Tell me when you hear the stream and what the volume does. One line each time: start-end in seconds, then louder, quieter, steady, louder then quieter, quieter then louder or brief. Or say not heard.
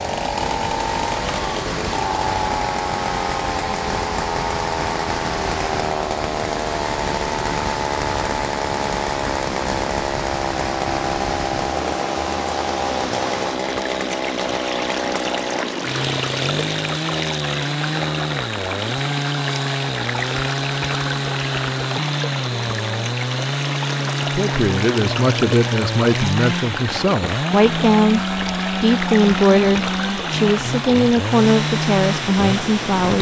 0.0-33.1 steady.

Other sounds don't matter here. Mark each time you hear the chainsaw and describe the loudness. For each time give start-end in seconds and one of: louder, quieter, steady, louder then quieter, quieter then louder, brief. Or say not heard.
0.0-33.1 steady.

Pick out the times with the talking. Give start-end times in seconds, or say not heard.
24.2-33.1.